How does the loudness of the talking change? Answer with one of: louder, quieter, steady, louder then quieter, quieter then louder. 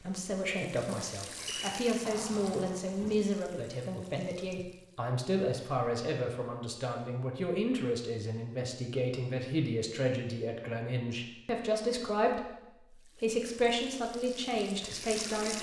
steady.